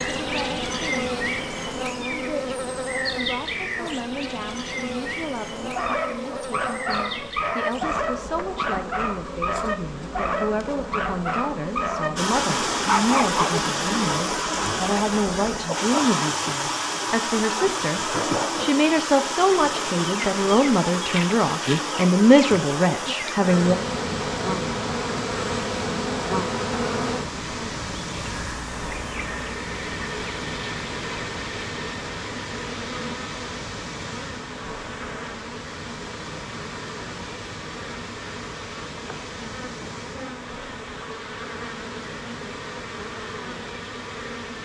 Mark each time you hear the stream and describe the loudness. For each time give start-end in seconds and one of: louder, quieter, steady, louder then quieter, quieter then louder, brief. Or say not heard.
12.2-44.5 quieter.